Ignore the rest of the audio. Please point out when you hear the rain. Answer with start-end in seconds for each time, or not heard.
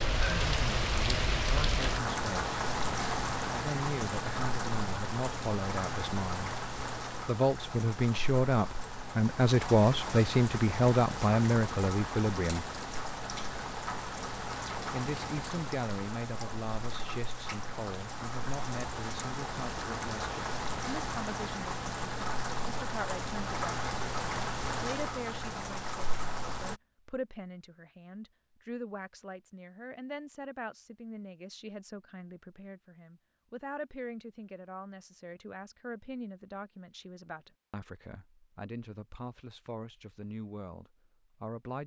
0.0-26.8.